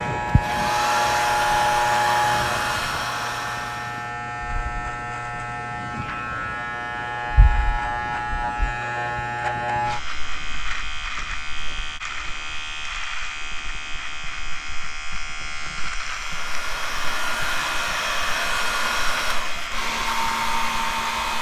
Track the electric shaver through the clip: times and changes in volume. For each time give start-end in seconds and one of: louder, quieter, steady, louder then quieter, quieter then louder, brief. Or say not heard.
0.0-21.3 quieter.